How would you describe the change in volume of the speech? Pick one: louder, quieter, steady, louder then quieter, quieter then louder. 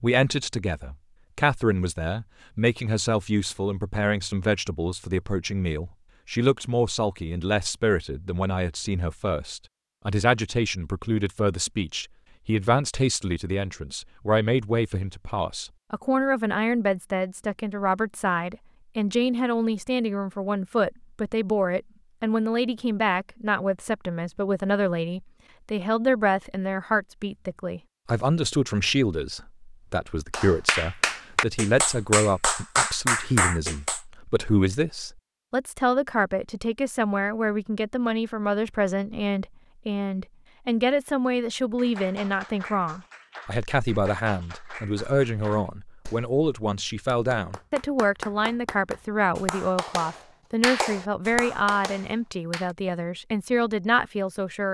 steady.